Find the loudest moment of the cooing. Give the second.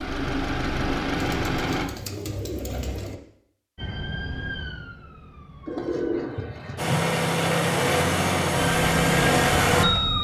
6 s.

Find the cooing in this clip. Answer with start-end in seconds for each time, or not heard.
1.1-3.1, 5.7-7.0.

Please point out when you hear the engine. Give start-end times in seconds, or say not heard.
0.0-1.9, 6.8-10.2.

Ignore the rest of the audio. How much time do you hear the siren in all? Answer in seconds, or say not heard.
4 s.